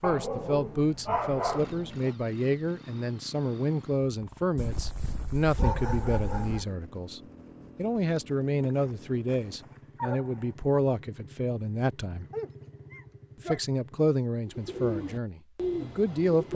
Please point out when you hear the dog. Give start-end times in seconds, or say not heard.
0.0-2.1, 4.5-6.7, 8.6-10.5, 12.3-13.6.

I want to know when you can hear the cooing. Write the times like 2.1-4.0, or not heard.
14.4-16.4.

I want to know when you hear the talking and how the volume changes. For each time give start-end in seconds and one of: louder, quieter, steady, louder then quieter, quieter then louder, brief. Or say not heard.
0.0-12.2 steady
13.4-16.4 brief.